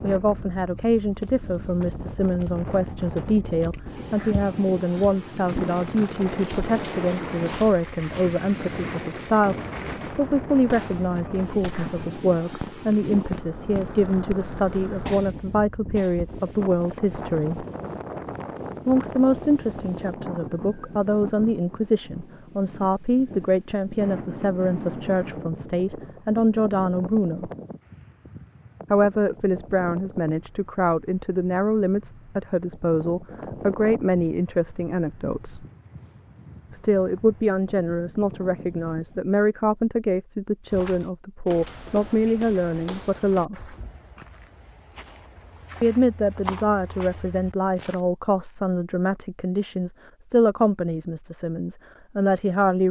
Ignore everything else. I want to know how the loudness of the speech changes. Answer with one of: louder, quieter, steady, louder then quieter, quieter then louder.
steady.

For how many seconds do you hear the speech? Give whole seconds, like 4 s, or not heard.
47 s.